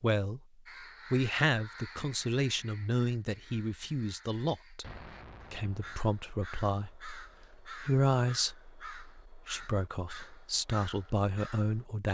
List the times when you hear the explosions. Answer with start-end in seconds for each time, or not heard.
4.8-6.0.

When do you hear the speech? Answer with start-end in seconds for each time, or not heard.
0.0-0.4, 1.1-4.8, 5.5-12.1.